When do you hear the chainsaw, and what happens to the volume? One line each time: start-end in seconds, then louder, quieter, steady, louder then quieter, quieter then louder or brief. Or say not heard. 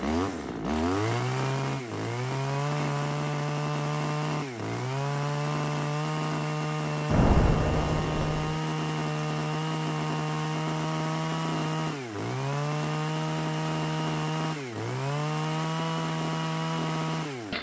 0.0-17.5 steady.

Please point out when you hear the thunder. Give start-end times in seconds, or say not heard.
7.0-8.6.